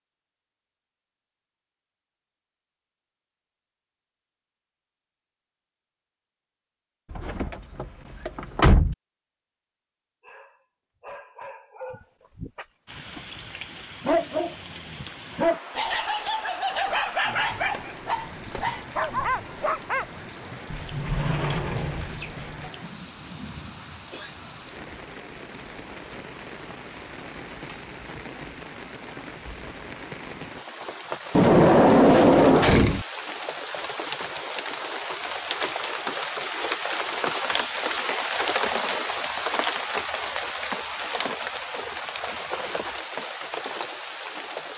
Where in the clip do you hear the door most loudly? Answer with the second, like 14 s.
32 s.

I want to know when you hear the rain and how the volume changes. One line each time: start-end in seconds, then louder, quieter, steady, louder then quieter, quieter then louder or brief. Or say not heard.
12.8-44.7 louder.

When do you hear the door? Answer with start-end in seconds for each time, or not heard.
7.1-8.9, 20.7-22.7, 31.3-33.0.